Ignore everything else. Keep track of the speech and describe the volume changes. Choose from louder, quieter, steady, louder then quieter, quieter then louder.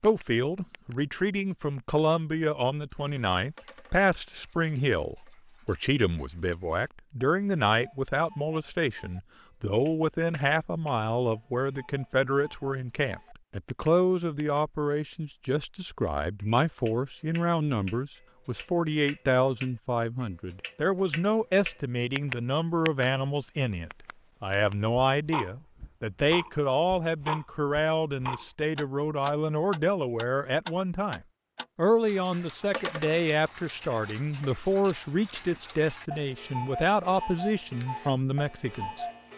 steady.